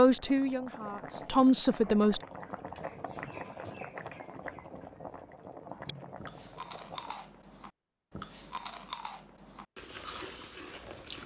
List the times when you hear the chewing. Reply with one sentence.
The chewing can be heard from 5.8 to 11.2 s.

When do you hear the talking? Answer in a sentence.
The talking can be heard from 0.0 to 2.2 s.